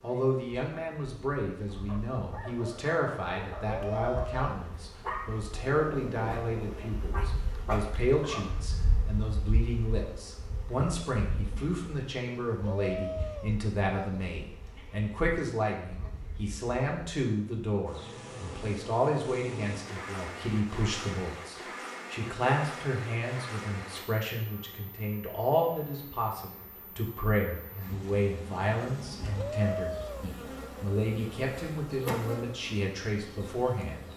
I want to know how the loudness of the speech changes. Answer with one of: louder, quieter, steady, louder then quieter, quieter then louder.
steady.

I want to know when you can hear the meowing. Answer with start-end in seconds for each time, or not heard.
3.6-4.7, 12.6-13.6, 29.4-30.4.